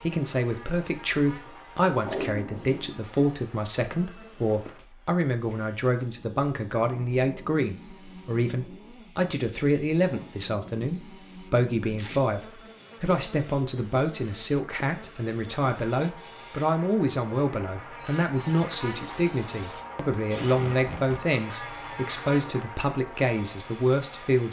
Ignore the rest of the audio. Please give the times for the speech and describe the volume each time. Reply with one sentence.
The speech can be heard from 0.0 to 24.4 s, at a steady volume.